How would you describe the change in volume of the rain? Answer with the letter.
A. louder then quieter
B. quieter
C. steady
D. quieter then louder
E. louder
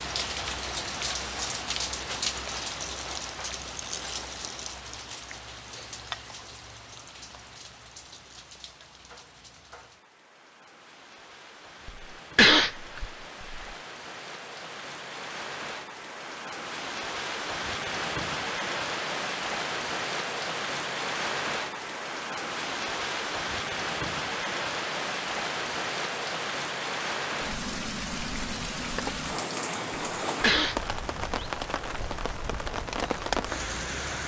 D.